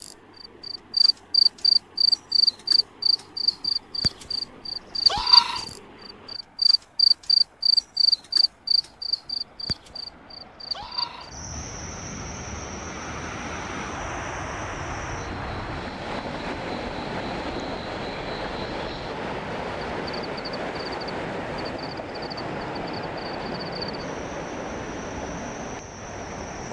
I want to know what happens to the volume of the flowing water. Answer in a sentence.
The loudness of the flowing water goes up.